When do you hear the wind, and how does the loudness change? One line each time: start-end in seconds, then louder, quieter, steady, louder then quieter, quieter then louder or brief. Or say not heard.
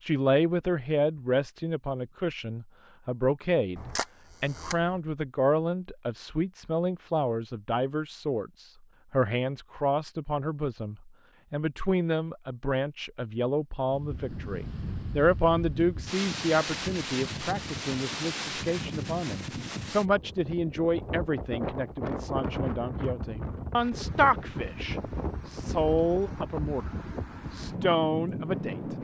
13.9-29.0 steady.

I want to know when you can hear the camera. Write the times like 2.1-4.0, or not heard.
3.8-5.0.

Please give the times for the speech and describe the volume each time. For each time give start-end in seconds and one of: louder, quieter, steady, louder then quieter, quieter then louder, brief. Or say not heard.
0.0-26.9 steady
27.5-28.9 brief.